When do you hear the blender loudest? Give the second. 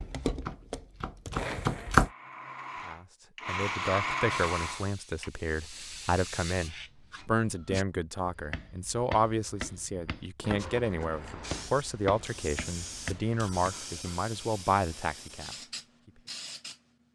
4 s.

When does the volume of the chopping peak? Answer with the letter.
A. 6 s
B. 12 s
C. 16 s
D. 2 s
D.